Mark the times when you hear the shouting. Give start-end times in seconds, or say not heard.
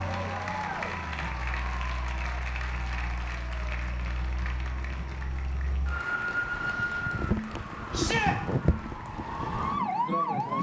7.9-8.3.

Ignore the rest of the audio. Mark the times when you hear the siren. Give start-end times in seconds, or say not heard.
0.0-10.5.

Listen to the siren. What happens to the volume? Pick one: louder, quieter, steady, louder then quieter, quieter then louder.
louder.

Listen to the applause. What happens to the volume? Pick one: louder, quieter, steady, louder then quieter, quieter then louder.
quieter.